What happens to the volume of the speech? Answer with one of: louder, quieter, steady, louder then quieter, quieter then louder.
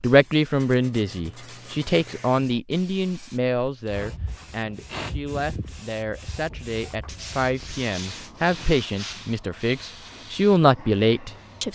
quieter then louder.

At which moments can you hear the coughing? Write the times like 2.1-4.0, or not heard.
not heard.